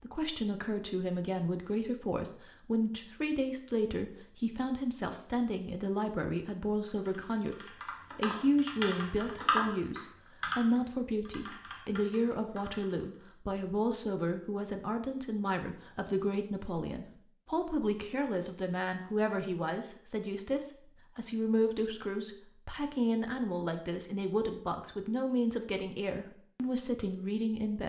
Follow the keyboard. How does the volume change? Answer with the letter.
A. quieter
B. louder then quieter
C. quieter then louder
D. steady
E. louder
B.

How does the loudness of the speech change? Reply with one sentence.
The loudness of the speech stays about the same.